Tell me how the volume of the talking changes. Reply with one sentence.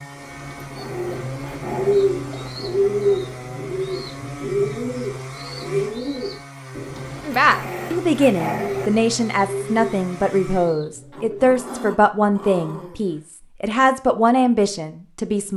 The volume of the talking stays about the same.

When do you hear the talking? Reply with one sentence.
The talking can be heard from 7.2 to 15.5 s.